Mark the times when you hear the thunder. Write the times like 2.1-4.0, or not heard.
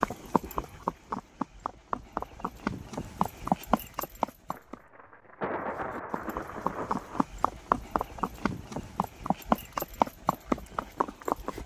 4.5-7.2.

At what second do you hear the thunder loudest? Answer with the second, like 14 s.
6 s.